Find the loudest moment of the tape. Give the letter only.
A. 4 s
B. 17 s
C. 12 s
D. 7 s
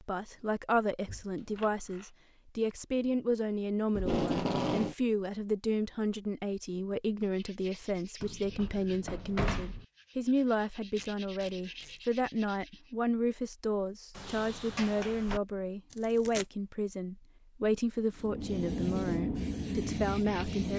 A.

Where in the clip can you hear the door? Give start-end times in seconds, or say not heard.
1.1-2.1, 8.2-9.8, 14.1-15.4.